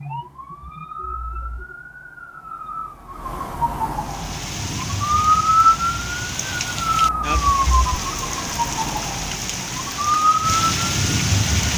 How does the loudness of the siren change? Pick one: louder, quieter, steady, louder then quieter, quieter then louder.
louder then quieter.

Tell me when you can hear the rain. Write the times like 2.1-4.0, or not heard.
4.0-11.7.